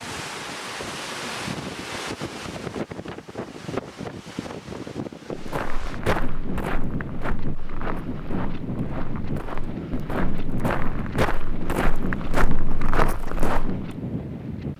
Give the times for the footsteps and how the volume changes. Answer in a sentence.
The footsteps can be heard from 5.3 to 13.9 s, getting quieter then louder.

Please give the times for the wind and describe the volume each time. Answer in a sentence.
You can hear the wind from 0.0 to 14.7 s, at a steady volume.